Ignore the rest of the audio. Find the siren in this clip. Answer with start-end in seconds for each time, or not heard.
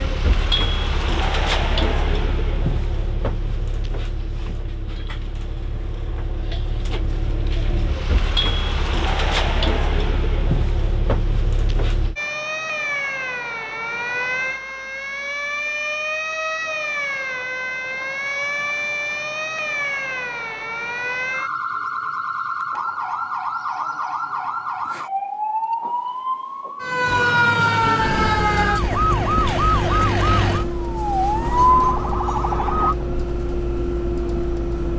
12.2-33.0.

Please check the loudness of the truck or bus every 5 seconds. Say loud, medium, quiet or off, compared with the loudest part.
loud, loud, loud, off, off, loud, loud.